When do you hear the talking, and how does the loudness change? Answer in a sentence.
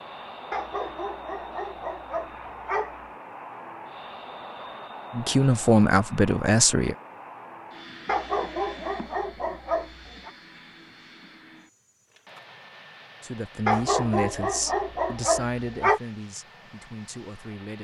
You can hear the talking briefly from 5.1 to 7.0 s; and from 13.2 to 17.7 s, getting quieter.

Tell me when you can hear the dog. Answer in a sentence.
You can hear the dog from 0.5 to 3.1 s, from 8.1 to 10.3 s and from 13.7 to 16.0 s.